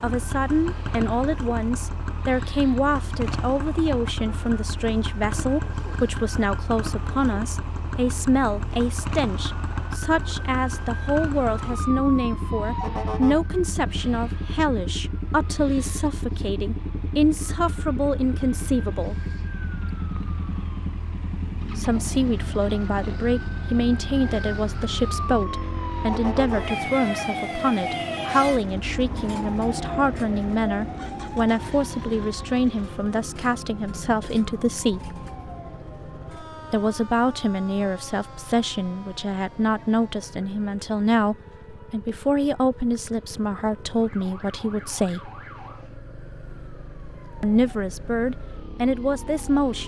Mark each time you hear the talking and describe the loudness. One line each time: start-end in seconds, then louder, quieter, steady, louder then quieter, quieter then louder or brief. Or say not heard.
0.0-19.1 steady
21.8-35.0 steady
36.7-45.3 steady
47.4-49.8 brief.